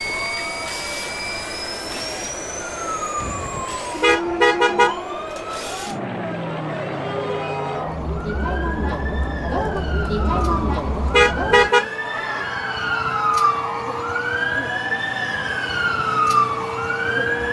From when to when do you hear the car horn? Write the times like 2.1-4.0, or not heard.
3.2-5.0, 10.3-11.8.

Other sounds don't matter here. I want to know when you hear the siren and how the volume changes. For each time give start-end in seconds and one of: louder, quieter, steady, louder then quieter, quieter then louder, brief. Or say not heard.
0.1-17.4 louder.